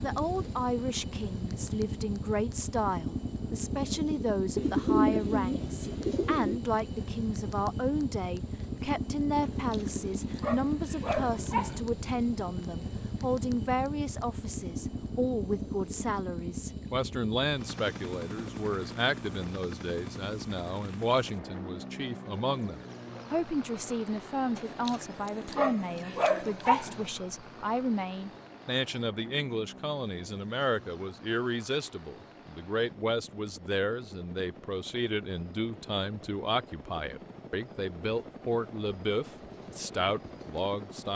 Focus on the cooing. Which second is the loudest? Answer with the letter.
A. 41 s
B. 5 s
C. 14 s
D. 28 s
B.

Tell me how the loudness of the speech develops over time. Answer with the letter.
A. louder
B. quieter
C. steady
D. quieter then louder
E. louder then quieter
C.